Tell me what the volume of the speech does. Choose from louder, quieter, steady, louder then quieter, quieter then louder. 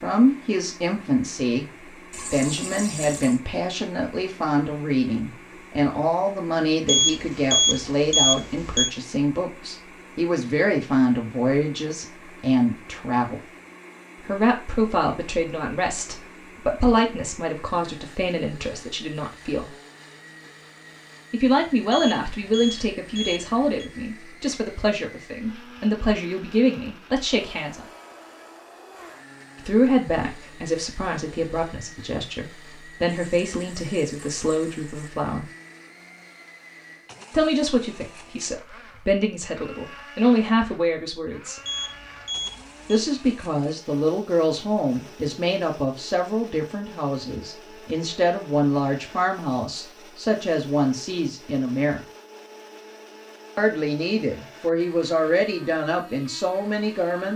steady.